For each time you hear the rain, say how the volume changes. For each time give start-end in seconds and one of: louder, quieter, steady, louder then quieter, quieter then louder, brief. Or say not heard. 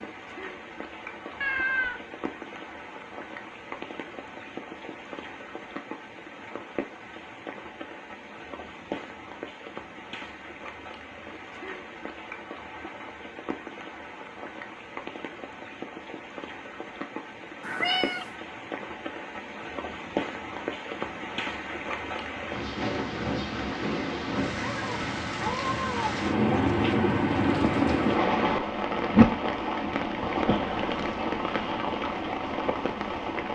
0.0-33.5 louder.